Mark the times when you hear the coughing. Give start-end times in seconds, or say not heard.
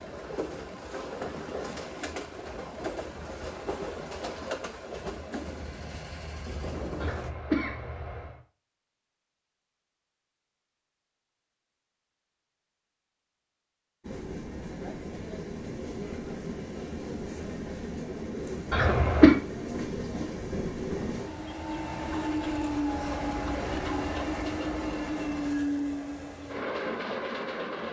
7.0-8.3, 18.7-19.4.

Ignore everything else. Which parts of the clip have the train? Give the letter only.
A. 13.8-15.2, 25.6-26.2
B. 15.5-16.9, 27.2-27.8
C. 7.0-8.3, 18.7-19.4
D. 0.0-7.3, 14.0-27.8
D.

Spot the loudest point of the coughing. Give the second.
19 s.